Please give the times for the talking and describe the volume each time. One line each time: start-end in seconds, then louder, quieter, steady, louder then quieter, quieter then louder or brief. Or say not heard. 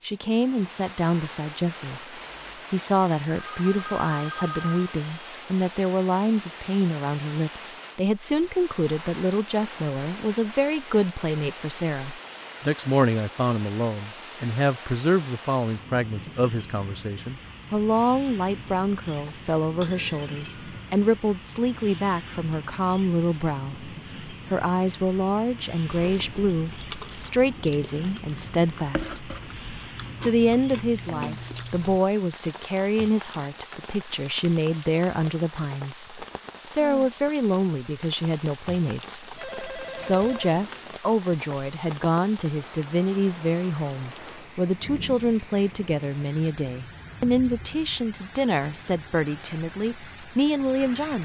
0.0-2.0 brief
2.7-29.4 steady
30.2-51.2 steady.